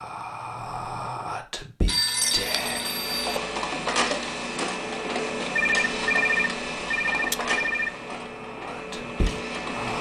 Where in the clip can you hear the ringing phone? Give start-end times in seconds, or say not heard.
1.9-3.4, 5.5-8.0.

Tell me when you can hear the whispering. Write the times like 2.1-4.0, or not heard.
0.0-2.8, 8.1-9.9.